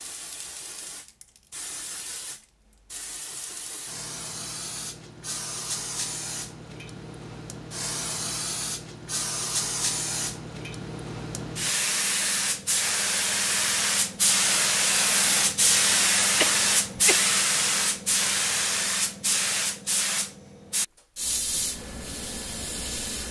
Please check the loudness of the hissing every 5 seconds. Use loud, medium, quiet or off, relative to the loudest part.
quiet, medium, loud, loud, medium.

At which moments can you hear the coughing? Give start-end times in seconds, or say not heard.
16.4-17.2.